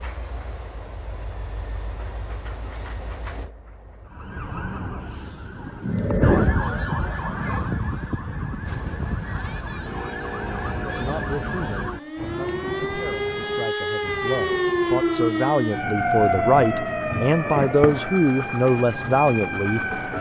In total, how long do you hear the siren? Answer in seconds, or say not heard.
16 s.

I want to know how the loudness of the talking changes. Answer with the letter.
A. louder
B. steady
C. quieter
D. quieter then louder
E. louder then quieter
A.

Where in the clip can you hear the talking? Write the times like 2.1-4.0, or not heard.
10.8-20.1.